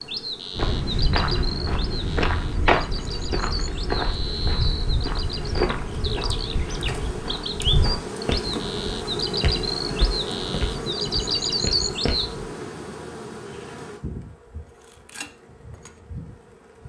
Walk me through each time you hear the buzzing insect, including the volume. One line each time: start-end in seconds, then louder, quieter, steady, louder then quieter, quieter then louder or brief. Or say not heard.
0.0-16.8 louder then quieter.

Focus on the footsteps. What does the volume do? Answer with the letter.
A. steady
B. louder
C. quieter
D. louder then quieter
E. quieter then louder
C.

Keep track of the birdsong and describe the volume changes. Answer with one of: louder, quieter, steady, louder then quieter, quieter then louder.
louder.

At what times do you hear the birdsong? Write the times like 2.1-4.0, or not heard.
0.0-12.3.